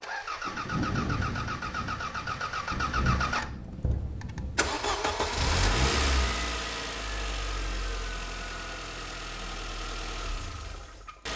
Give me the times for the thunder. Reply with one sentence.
You can hear the thunder from 0.5 to 4.8 s.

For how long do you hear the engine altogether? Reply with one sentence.
You can hear the engine for 11 seconds altogether.